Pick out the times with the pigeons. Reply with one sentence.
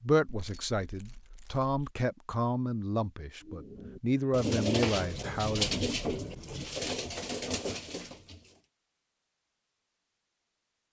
The pigeons can be heard from 3.4 to 8.6 s.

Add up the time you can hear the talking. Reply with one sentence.
You can hear the talking for 6 seconds altogether.